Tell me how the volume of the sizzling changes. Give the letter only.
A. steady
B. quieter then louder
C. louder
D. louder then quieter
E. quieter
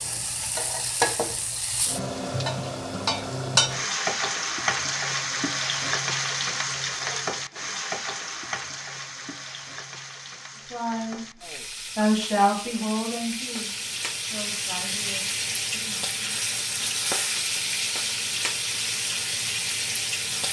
B.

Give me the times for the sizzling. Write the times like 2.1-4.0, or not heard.
0.0-20.4.